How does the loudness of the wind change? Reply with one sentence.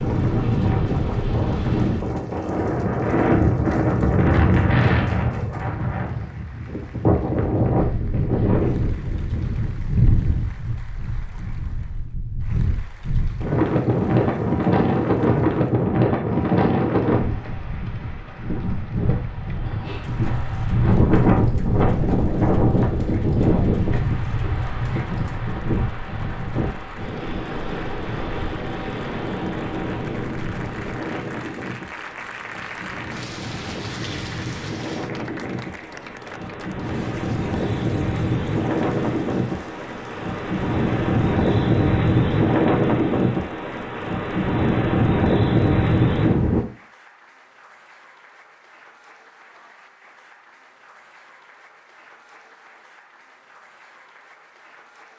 The volume of the wind goes down, then up.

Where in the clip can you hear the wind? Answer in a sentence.
You can hear the wind from 0.0 to 46.6 s.